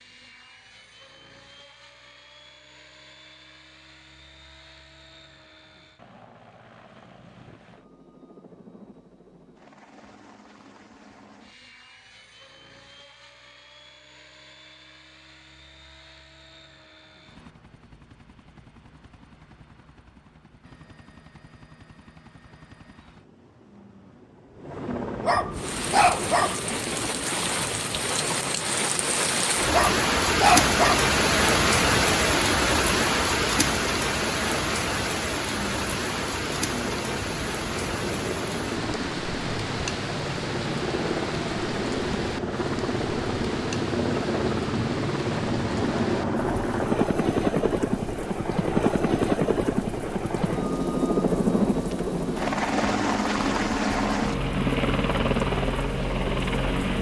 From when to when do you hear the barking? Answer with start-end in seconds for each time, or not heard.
25.2-26.6, 29.7-31.1.